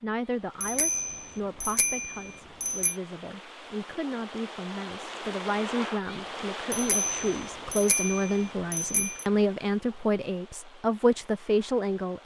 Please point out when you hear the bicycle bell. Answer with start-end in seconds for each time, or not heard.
0.6-3.0, 6.7-9.2.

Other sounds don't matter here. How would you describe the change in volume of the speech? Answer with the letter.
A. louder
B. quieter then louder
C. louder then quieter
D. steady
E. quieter
A.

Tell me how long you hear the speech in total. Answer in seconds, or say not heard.
12 s.